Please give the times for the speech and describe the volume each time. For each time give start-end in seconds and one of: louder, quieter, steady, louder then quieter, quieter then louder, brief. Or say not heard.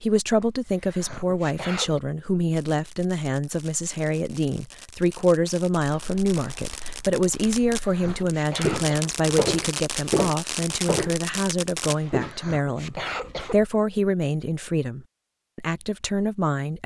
0.0-16.8 steady.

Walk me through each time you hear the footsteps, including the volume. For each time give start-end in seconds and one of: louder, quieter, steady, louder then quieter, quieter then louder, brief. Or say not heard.
5.8-11.2 louder
11.9-12.3 brief.